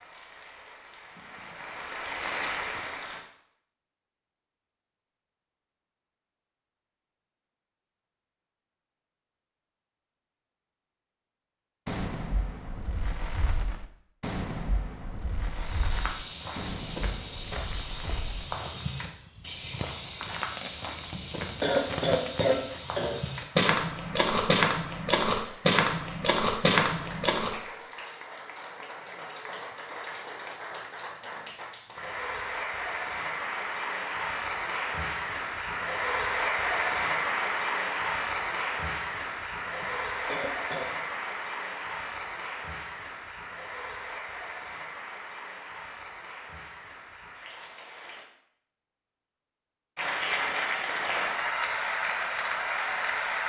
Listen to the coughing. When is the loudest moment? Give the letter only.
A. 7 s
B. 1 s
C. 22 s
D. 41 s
C.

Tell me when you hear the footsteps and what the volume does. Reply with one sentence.
The footsteps can be heard from 15.5 to 27.6 s, at a steady volume.